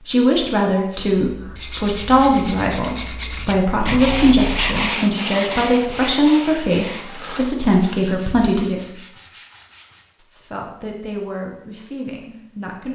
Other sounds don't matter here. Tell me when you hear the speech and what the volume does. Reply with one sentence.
You can hear the speech from 0.1 to 9.1 s, at a steady volume; and briefly from 10.2 to 12.9 s.